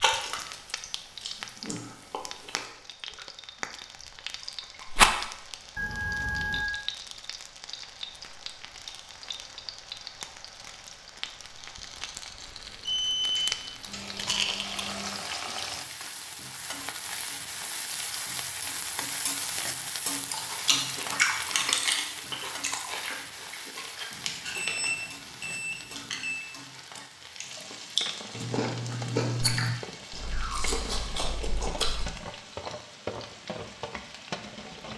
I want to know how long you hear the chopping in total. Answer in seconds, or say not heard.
not heard.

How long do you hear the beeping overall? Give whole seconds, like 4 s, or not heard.
5 s.